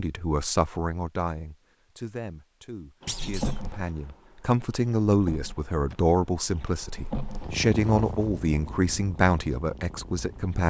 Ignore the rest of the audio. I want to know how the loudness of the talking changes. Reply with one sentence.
The volume of the talking goes down, then up.